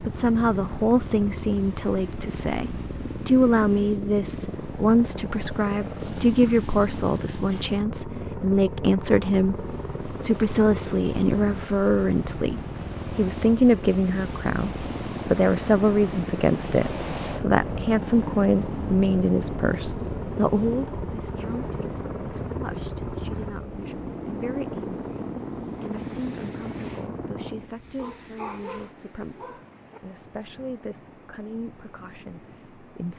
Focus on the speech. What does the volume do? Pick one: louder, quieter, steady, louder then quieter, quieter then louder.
quieter.